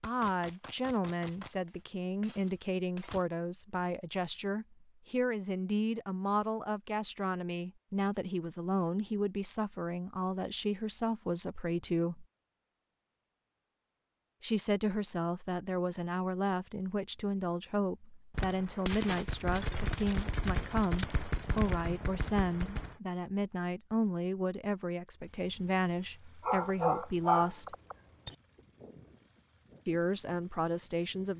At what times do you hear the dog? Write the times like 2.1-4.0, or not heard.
26.4-28.4.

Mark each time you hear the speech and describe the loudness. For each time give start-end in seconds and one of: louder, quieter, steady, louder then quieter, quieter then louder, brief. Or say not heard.
0.0-12.2 steady
14.4-27.8 steady
29.9-31.3 brief.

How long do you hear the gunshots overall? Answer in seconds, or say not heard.
8 s.